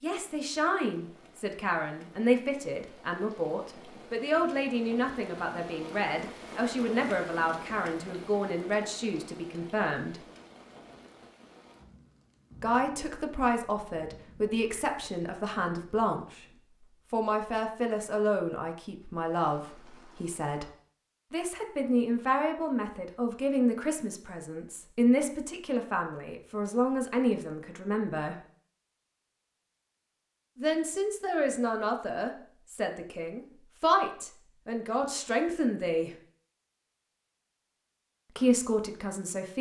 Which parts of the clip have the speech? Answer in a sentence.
You can hear the speech from 0.0 to 10.2 s, from 12.6 to 16.4 s, from 17.1 to 20.7 s, from 21.3 to 28.4 s, from 30.6 to 36.1 s and from 38.4 to 39.5 s.